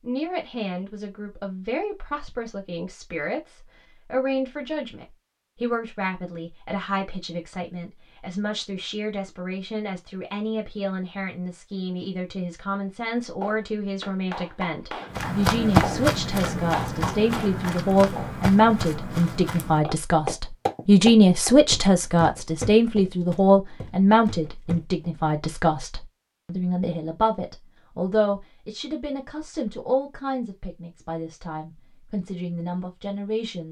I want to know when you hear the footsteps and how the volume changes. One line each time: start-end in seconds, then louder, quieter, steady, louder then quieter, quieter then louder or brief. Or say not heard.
15.1-25.1 quieter.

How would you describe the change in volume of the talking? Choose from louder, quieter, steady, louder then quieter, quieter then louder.
louder then quieter.